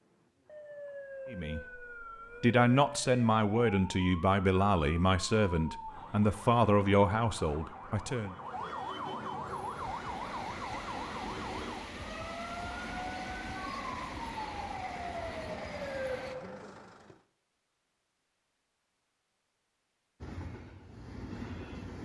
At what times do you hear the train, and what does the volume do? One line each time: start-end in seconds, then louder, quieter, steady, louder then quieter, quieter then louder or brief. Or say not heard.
9.4-16.4 steady
20.2-22.0 brief.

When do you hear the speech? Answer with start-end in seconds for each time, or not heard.
1.3-8.3.